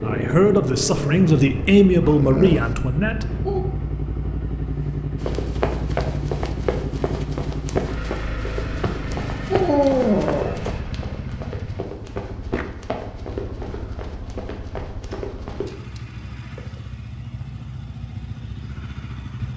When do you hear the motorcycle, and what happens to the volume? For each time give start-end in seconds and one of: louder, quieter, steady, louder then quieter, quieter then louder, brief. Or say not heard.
0.0-19.5 quieter.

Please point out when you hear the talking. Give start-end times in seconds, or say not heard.
0.0-3.3.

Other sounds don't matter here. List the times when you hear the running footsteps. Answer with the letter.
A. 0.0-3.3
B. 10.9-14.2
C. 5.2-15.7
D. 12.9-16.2
C.